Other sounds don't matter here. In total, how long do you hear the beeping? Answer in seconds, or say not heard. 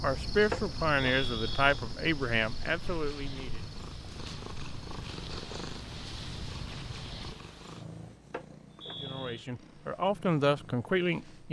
2 s.